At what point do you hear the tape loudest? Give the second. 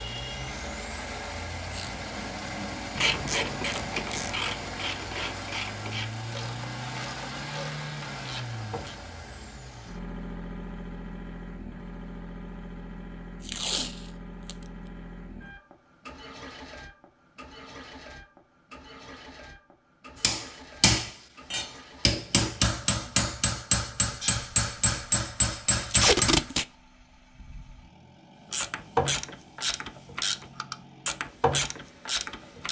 26 s.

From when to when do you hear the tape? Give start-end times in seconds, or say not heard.
3.2-4.3, 13.4-14.6, 25.9-26.6.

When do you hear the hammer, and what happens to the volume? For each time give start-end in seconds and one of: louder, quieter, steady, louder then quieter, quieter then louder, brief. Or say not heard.
20.2-26.4 steady.